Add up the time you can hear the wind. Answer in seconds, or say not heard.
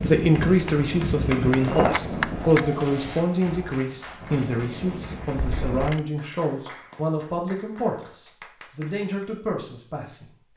6 s.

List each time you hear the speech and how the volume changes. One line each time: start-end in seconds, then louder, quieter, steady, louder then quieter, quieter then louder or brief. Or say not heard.
0.0-10.5 quieter.